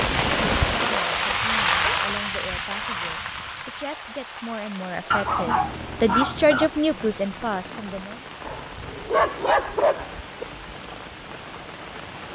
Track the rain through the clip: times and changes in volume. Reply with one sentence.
The rain can be heard from 0.0 to 12.2 s, getting quieter.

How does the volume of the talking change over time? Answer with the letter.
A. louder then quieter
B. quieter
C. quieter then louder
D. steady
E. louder
E.